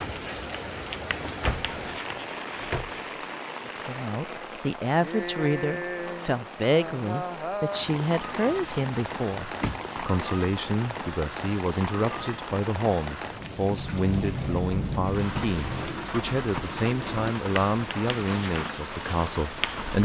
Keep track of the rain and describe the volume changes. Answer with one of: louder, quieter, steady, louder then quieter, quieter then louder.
steady.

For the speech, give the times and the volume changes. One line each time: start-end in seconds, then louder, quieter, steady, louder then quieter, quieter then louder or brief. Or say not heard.
3.6-20.0 steady.